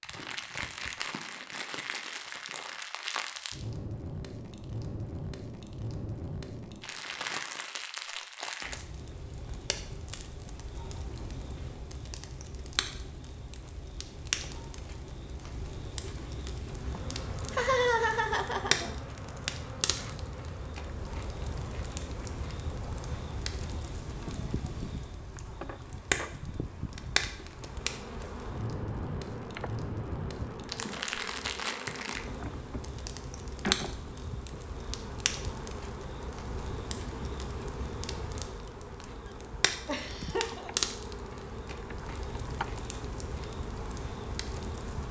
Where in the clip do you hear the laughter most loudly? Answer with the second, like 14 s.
18 s.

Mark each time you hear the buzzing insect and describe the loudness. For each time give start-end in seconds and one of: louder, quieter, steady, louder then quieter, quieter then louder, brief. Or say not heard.
16.6-45.0 steady.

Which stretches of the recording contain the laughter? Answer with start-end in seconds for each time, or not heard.
16.9-18.9, 39.9-40.7.